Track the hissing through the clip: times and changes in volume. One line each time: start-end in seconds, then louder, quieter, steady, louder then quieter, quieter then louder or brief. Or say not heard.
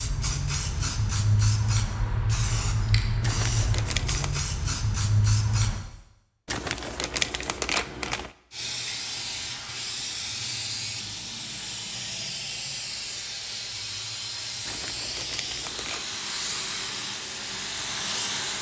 0.0-5.8 steady
8.5-18.5 steady.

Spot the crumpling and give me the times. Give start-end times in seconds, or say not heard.
3.2-4.4, 6.5-8.3, 14.7-16.1.